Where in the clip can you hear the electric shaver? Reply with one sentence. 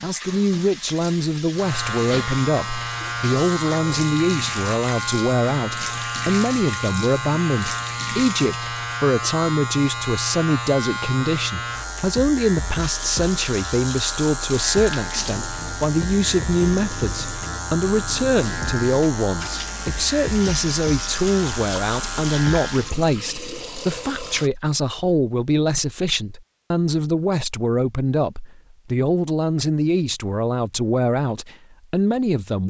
The electric shaver can be heard from 1.5 to 22.9 s.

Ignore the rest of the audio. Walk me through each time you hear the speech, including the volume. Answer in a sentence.
The speech can be heard from 0.0 to 32.6 s, at a steady volume.